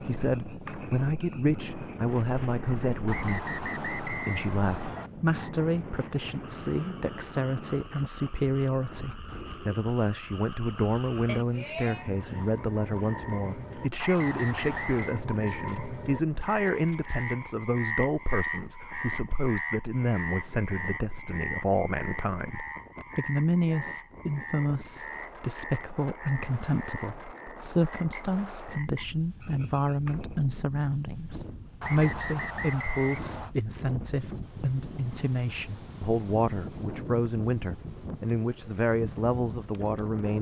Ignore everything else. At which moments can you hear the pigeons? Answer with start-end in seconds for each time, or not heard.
not heard.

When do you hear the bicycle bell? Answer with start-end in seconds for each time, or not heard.
11.2-12.1.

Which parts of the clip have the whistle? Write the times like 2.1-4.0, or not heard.
3.0-5.1, 14.0-15.2, 31.8-33.5.